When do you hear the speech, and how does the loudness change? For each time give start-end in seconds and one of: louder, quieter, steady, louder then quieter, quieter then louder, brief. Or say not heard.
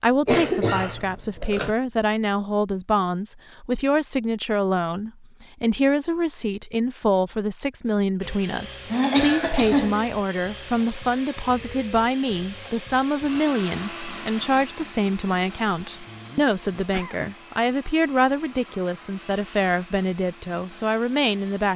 0.0-21.7 steady.